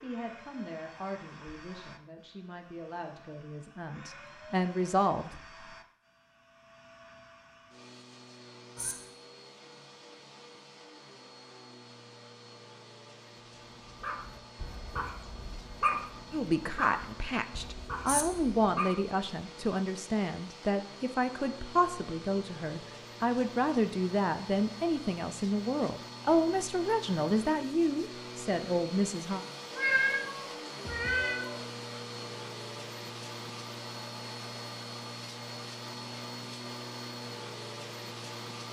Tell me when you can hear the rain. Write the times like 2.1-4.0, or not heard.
not heard.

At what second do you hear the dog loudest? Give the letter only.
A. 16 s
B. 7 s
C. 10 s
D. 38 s
A.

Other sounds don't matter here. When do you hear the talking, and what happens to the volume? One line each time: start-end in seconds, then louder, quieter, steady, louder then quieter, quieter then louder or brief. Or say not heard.
0.0-5.3 quieter then louder
16.3-29.4 steady.